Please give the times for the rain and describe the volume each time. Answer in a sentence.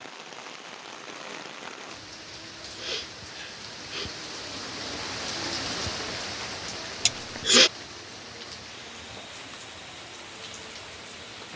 You can hear the rain from 0.0 to 11.5 s, getting louder then quieter.